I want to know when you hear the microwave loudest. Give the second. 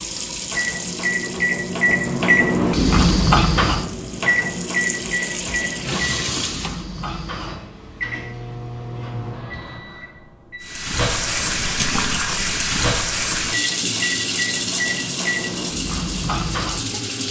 3 s.